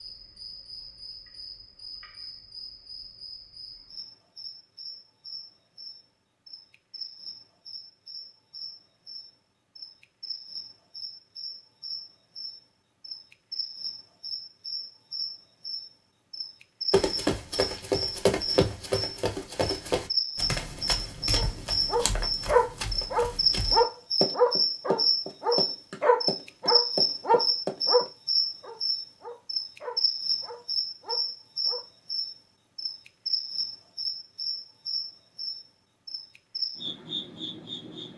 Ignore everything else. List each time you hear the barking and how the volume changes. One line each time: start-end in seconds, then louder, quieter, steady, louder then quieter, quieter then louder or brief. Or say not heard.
21.3-31.9 quieter.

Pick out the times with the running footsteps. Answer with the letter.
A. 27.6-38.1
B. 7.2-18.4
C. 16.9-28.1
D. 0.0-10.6
C.